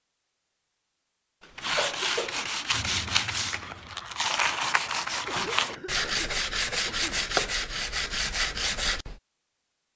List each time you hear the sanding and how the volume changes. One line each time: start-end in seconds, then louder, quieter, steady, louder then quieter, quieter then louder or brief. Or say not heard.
1.6-9.2 steady.